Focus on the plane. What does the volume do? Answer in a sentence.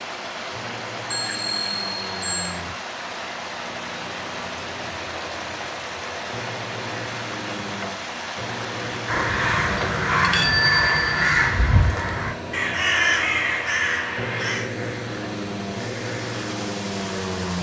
The volume of the plane goes up.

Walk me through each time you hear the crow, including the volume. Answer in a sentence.
The crow can be heard from 8.9 to 14.7 s, at a steady volume.